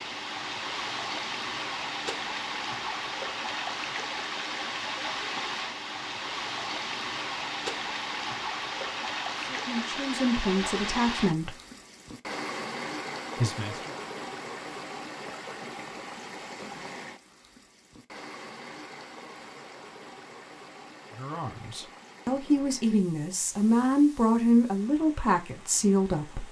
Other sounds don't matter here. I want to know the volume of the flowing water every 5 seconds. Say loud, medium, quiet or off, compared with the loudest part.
loud, loud, loud, medium, quiet, quiet.